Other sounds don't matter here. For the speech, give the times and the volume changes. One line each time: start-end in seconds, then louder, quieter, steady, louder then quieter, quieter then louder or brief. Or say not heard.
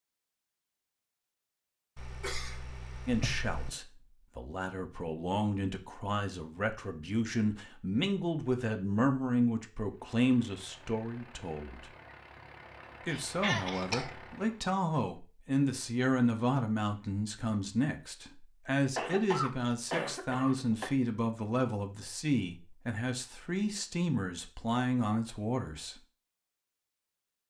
3.0-11.9 louder
13.1-25.9 steady.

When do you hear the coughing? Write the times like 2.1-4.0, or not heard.
1.9-3.7, 13.1-14.1, 18.9-20.9.